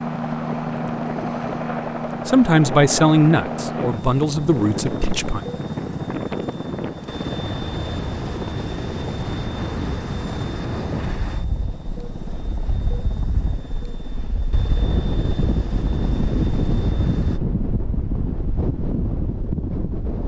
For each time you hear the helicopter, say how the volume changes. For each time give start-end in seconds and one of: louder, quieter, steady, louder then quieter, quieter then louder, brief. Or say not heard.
0.0-17.4 quieter.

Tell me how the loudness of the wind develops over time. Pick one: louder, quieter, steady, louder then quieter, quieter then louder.
louder.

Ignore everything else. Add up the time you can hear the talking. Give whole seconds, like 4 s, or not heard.
3 s.